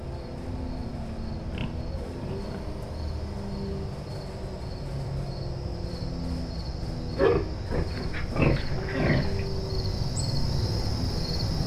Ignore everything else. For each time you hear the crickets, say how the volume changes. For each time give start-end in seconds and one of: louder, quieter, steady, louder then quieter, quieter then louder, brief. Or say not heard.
0.0-11.6 louder.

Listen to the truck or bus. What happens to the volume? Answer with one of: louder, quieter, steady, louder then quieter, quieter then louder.
steady.